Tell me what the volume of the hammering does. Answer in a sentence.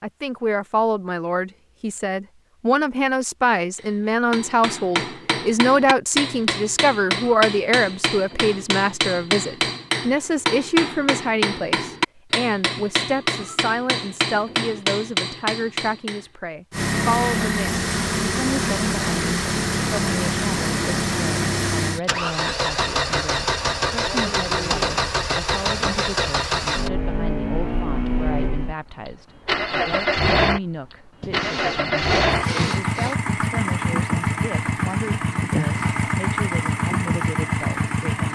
The loudness of the hammering stays about the same.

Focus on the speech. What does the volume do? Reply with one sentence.
The volume of the speech goes down.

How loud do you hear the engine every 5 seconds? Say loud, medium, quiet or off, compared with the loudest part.
off, off, off, loud, loud, loud, loud, loud.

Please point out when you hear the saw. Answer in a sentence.
You can hear the saw from 31.2 to 33.1 s.